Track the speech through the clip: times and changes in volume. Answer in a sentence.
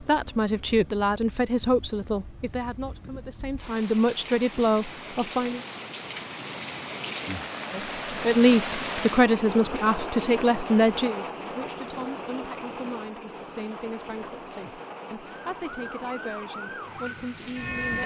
The speech can be heard from 0.0 to 5.7 s, getting quieter then louder; and from 7.7 to 18.0 s, getting quieter.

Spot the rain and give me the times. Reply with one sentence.
The rain can be heard from 0.0 to 18.0 s.